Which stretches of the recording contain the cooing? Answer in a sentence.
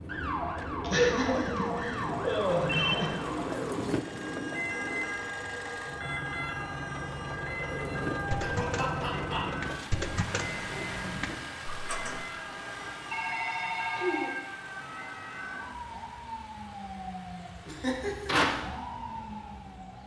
You can hear the cooing from 0.0 to 5.0 s and from 7.7 to 12.2 s.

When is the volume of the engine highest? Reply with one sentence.
The volume of the engine peaks at 9 seconds.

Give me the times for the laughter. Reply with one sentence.
You can hear the laughter from 0.8 to 3.1 s, from 8.4 to 9.5 s and from 17.6 to 18.4 s.